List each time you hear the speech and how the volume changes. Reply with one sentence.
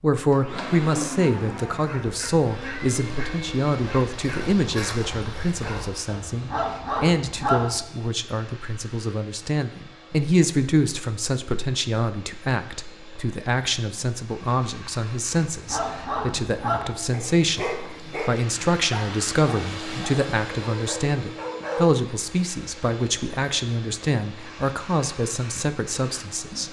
The speech can be heard from 0.0 to 26.6 s, at a steady volume.